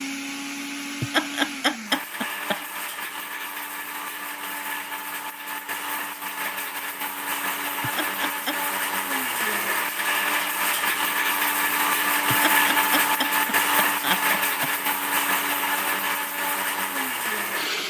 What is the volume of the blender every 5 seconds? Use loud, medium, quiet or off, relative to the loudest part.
medium, medium, loud, loud.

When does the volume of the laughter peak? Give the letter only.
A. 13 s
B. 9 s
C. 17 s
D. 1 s
D.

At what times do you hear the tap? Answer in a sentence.
The tap can't be heard in this clip.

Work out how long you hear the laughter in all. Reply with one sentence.
The laughter can be heard for 5 seconds in total.